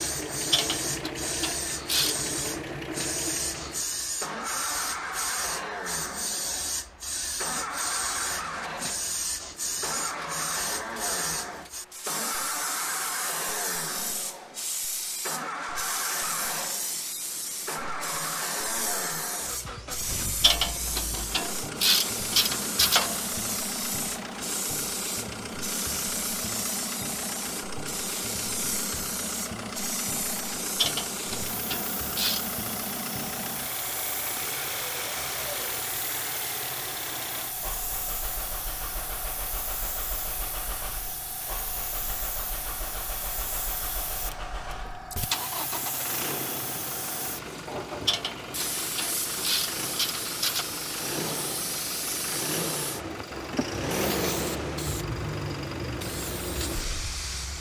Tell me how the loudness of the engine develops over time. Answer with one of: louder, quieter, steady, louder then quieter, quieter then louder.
steady.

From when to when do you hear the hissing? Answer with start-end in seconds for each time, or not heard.
0.0-57.5.